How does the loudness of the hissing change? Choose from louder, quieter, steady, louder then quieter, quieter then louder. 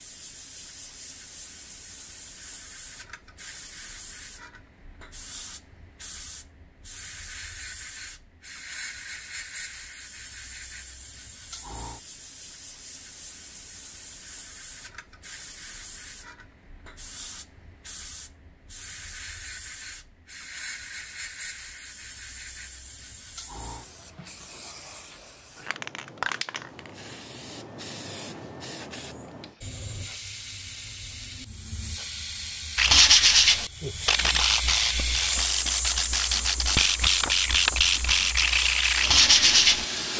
louder.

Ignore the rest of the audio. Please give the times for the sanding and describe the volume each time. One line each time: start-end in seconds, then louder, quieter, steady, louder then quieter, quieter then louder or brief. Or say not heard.
32.8-40.1 quieter then louder.